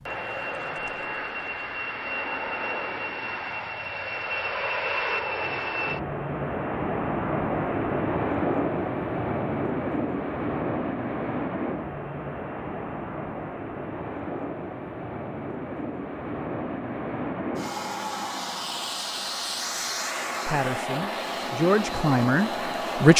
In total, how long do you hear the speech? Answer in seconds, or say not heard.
3 s.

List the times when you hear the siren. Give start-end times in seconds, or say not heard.
not heard.